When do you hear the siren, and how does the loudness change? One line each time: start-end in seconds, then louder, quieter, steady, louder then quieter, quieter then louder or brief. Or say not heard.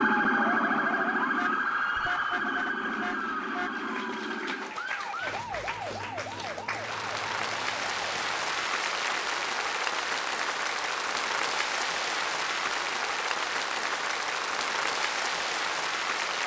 0.0-8.8 quieter.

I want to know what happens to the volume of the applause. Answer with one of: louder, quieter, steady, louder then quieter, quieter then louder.
louder.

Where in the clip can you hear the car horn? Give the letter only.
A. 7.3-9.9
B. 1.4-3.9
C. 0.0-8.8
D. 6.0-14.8
B.